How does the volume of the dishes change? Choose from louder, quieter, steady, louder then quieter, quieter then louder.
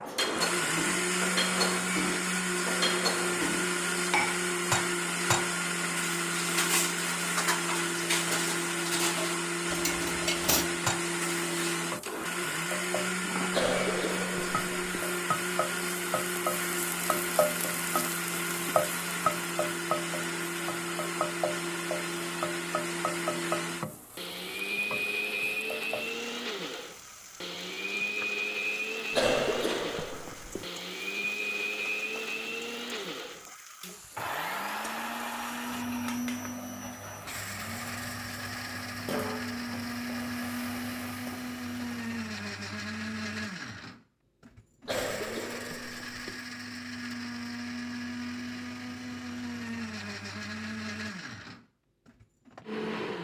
steady.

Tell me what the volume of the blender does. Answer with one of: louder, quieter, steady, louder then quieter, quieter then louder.
quieter.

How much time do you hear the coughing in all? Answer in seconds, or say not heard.
5 s.